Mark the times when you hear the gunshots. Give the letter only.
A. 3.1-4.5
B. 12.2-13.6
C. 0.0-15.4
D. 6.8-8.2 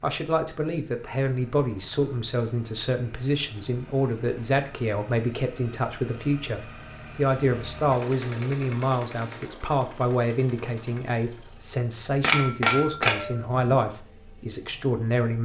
B.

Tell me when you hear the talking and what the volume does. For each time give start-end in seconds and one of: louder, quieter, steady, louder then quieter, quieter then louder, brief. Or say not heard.
0.0-15.4 steady.